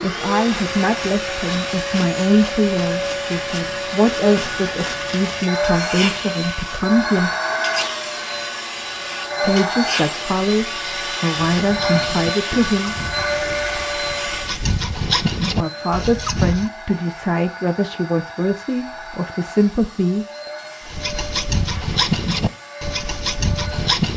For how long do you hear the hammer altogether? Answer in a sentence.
You can't hear the hammer here.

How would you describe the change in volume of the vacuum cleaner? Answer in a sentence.
The volume of the vacuum cleaner goes down.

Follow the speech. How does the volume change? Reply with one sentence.
The loudness of the speech stays about the same.